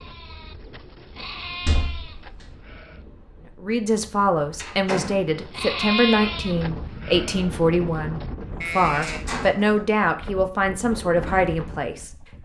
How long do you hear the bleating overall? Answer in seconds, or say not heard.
7 s.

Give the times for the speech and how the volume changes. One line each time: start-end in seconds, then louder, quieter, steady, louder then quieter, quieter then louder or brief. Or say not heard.
3.6-12.4 steady.